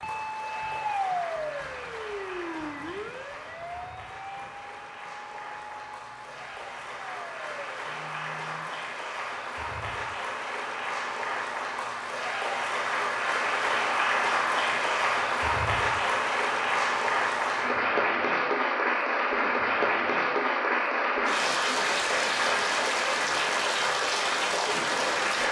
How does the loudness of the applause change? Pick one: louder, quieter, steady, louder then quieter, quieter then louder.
louder.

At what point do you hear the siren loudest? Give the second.
1 s.